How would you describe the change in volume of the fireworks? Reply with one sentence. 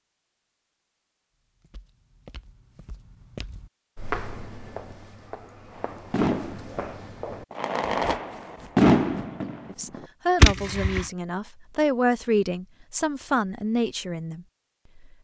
The volume of the fireworks goes up.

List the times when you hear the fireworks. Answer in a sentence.
The fireworks can be heard from 5.8 to 11.1 s.